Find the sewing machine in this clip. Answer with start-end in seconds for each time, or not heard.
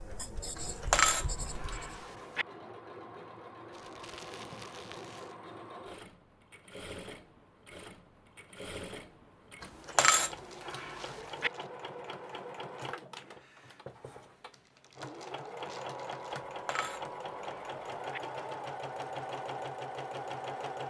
0.0-20.8.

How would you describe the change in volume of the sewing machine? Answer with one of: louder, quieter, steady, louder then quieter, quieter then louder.
louder.